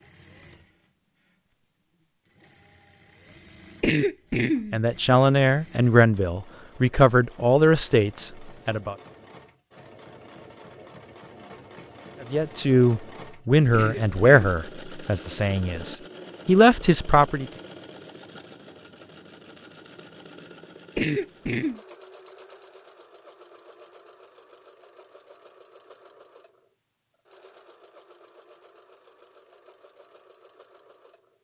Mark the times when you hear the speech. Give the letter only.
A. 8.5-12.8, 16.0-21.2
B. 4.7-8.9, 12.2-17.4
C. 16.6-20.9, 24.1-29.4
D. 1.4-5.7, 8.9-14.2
B.